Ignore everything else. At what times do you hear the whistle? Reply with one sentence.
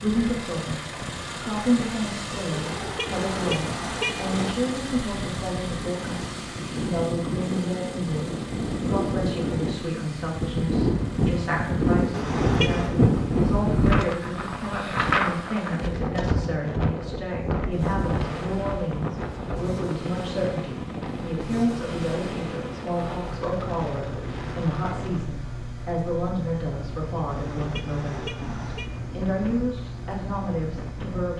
You can't hear the whistle here.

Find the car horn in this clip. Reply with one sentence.
The car horn can be heard from 2.5 to 4.5 s, from 12.1 to 12.9 s and from 27.2 to 28.9 s.